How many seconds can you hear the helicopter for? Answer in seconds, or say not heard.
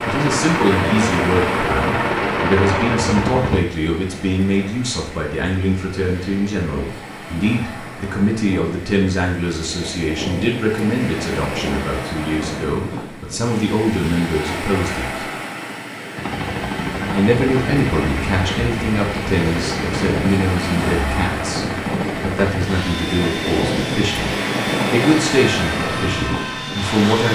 15 s.